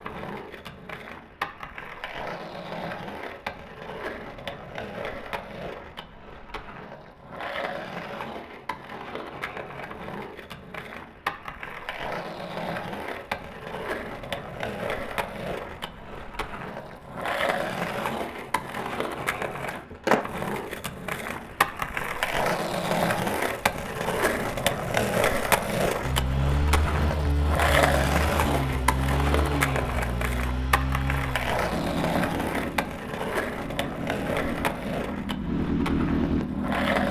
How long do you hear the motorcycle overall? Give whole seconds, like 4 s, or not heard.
11 s.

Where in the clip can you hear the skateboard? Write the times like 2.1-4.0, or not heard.
0.0-37.0.